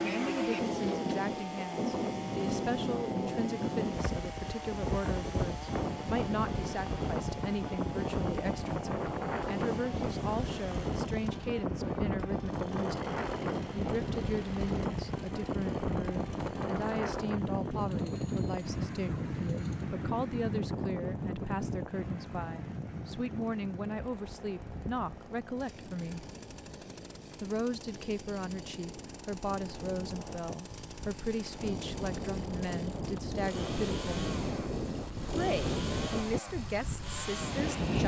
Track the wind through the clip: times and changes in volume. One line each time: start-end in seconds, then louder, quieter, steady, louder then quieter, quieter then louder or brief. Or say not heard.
0.0-38.0 quieter then louder.